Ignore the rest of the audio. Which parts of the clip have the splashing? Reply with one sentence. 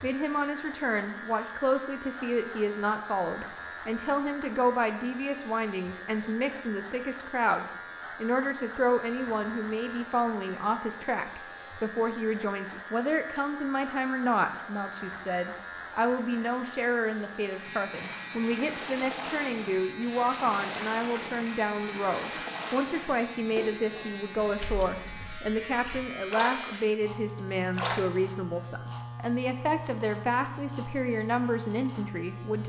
The splashing can be heard from 17.9 to 28.0 s.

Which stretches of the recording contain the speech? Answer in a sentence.
You can hear the speech from 0.0 to 32.6 s.